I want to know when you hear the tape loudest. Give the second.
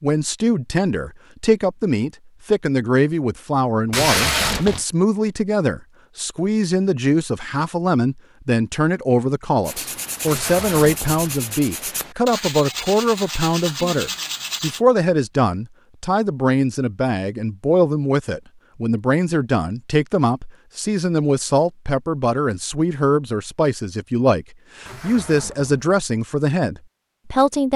4 s.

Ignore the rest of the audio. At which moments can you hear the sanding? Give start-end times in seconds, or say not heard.
9.7-14.8.